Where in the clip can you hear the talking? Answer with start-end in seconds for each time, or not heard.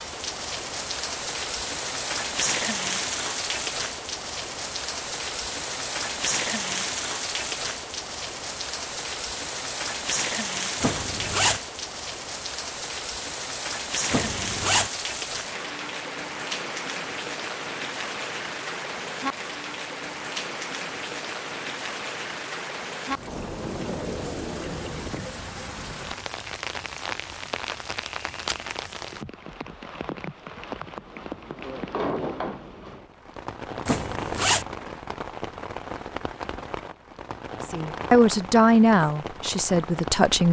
37.6-40.4.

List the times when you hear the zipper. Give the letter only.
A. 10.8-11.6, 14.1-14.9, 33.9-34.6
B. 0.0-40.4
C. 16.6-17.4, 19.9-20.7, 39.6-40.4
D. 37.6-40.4
A.